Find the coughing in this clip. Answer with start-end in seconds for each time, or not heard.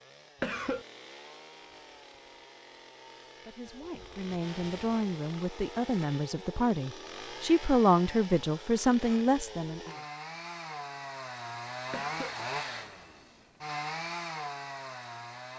0.4-0.8, 11.9-12.3.